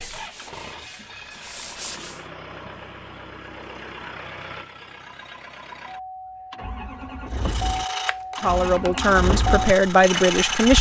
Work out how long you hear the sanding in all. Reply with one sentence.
You can hear the sanding for 6 seconds altogether.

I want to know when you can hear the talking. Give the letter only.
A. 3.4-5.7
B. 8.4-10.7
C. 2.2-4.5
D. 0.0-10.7
B.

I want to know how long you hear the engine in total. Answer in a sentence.
You can hear the engine for 11 seconds altogether.